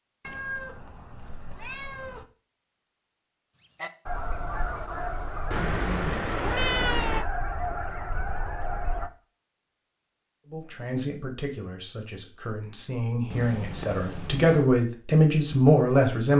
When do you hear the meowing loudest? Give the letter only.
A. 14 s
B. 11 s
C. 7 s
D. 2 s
C.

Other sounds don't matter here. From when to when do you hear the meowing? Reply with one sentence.
You can hear the meowing from 0.2 to 2.2 s, from 5.5 to 7.2 s and from 13.3 to 14.6 s.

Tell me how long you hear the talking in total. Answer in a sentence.
You can hear the talking for 6 seconds altogether.